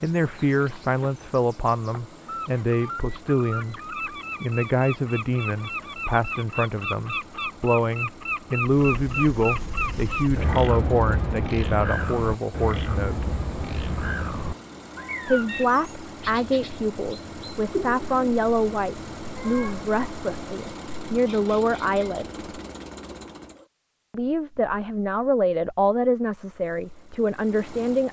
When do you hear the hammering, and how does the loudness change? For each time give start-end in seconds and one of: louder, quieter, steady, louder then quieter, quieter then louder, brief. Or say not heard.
not heard.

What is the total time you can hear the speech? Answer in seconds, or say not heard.
24 s.